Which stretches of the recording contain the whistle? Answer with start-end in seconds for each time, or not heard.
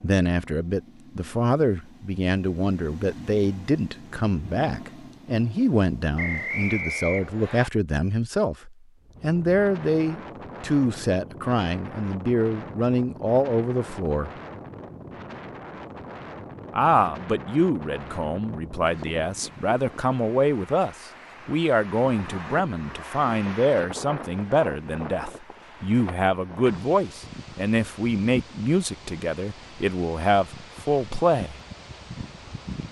6.2-7.7.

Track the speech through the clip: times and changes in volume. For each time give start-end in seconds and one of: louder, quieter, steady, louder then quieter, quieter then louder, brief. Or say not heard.
0.0-14.3 steady
16.7-31.6 steady.